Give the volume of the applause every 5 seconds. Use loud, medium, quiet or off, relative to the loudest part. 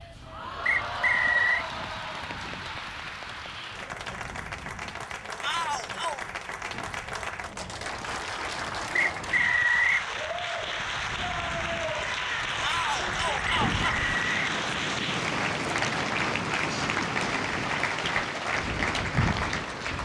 medium, medium, loud, loud.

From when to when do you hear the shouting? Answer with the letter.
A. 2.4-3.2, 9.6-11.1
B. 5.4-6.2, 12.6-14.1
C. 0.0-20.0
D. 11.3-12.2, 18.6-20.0
B.